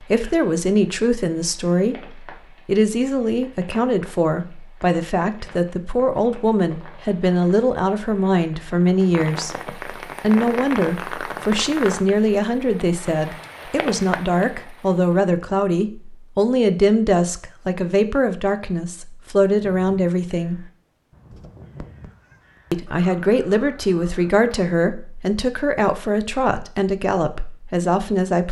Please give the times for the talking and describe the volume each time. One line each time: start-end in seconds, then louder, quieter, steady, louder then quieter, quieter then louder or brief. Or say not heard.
0.0-20.6 steady
22.7-28.4 steady.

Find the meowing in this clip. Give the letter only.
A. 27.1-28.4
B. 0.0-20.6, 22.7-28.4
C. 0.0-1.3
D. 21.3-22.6
D.